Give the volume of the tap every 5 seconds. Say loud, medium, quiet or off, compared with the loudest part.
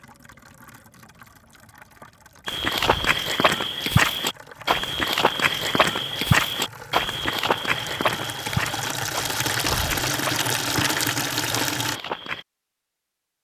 quiet, medium, loud.